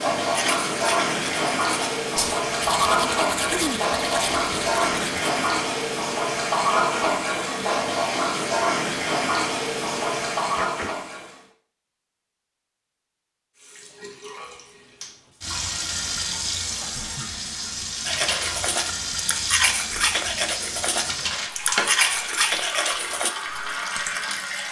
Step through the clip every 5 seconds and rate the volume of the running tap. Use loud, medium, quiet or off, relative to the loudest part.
loud, loud, medium, medium, medium.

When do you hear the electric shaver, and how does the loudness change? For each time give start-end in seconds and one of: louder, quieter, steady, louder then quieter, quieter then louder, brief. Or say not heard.
not heard.